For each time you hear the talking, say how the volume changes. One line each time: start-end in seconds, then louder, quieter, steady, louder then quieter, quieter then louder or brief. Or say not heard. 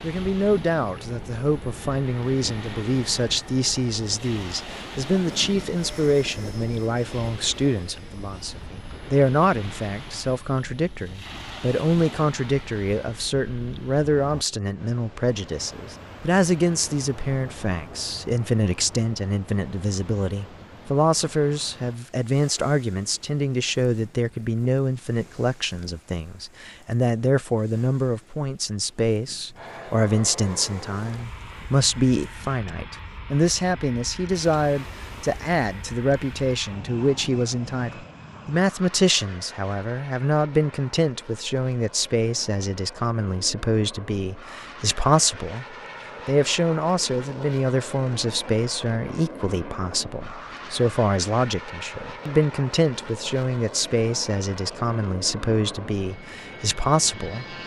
0.0-57.5 steady.